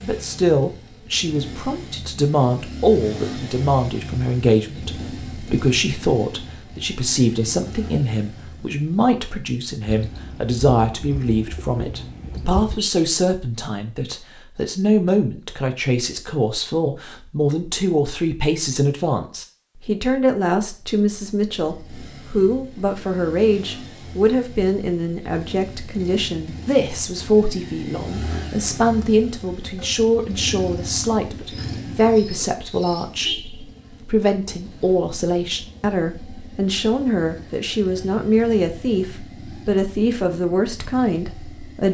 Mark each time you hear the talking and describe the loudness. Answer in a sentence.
You can hear the talking from 0.0 to 41.9 s, at a steady volume.